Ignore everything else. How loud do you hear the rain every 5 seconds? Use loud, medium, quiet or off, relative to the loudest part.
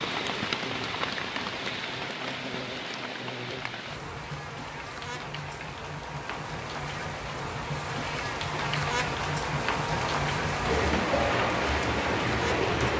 medium, medium, loud.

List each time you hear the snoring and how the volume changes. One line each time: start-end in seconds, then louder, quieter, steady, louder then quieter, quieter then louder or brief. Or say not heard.
not heard.